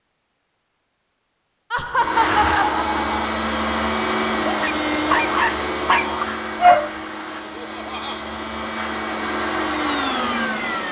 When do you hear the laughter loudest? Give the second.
2 s.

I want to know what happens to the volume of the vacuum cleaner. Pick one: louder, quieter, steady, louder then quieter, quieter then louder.
quieter then louder.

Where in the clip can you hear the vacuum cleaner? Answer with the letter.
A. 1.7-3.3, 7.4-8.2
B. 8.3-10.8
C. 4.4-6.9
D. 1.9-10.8
D.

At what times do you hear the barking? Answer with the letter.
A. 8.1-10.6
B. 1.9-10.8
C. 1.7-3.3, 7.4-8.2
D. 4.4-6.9
D.